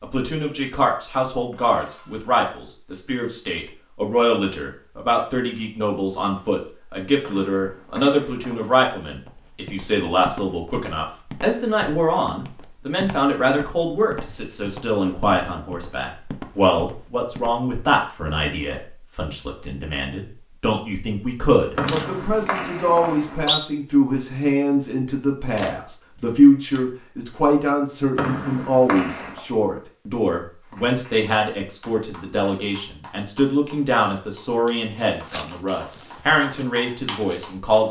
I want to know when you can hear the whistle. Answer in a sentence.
The whistle can be heard from 7.2 to 8.8 s, from 21.8 to 23.6 s and from 28.1 to 29.4 s.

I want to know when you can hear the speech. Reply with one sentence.
The speech can be heard from 0.0 to 37.8 s.